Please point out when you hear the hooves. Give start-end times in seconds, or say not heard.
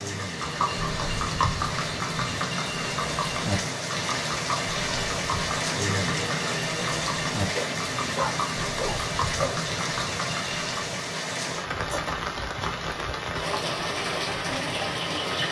0.2-11.0.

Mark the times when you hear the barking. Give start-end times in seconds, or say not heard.
7.5-9.6.